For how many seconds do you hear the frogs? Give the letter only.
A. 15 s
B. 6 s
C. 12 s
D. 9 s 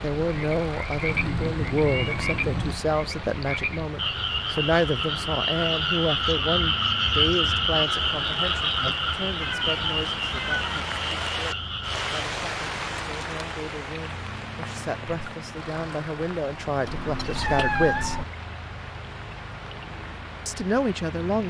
C.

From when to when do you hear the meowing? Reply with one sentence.
You can hear the meowing from 1.1 to 2.8 s, from 9.4 to 10.8 s and from 16.9 to 18.2 s.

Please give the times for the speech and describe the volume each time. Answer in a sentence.
The speech can be heard from 0.0 to 18.2 s, getting quieter then louder; and briefly from 20.4 to 21.4 s.